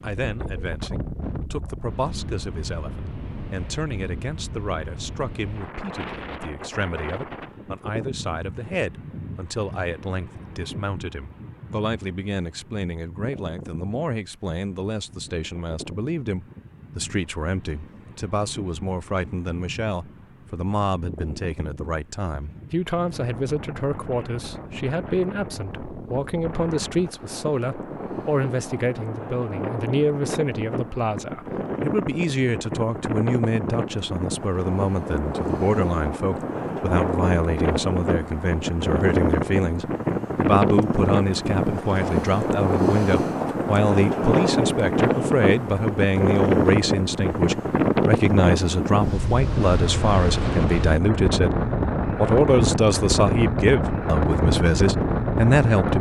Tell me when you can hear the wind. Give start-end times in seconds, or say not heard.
0.0-55.9.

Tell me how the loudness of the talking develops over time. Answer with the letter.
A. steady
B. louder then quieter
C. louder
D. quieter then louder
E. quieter
C.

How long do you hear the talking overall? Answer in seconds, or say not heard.
55 s.